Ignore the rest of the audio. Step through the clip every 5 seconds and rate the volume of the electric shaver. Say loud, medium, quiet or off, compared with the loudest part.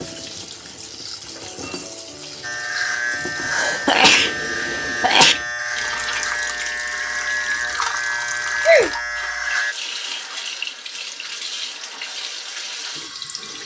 loud, loud, off.